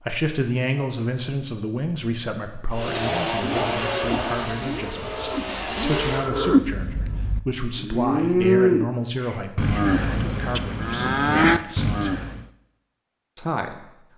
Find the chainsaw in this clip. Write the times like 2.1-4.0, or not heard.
2.7-6.3.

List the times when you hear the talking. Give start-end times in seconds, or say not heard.
0.0-12.2, 13.3-13.8.